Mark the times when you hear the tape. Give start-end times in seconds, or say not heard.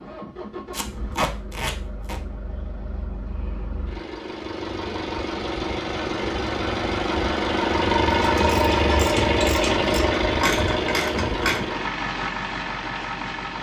0.7-2.2.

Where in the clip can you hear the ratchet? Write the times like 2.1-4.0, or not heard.
8.2-11.6.